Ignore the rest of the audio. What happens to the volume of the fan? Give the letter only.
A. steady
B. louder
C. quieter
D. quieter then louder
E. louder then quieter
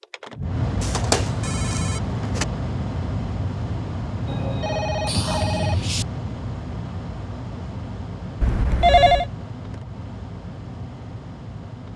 C.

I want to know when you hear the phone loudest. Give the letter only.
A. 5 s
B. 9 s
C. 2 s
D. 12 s
B.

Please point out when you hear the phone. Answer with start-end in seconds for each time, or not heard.
0.8-2.5, 4.2-6.0, 8.4-9.2.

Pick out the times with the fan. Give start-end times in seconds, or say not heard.
0.0-11.9.